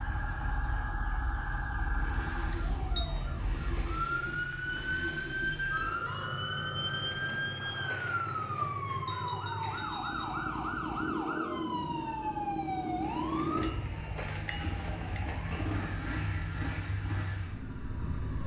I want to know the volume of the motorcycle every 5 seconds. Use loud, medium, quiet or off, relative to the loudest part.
medium, medium, loud, loud.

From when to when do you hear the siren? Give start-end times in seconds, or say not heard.
0.0-18.4.